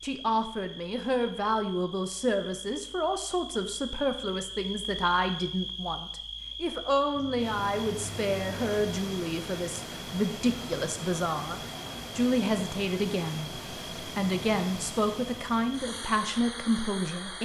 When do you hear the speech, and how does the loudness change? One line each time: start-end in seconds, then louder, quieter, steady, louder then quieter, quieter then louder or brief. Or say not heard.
0.0-17.4 steady.